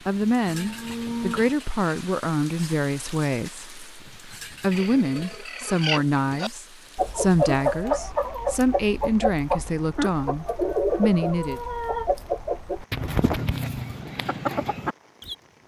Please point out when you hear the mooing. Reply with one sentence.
The mooing can be heard from 0.5 to 1.6 s.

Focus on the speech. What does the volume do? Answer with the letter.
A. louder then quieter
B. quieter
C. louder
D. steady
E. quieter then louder
D.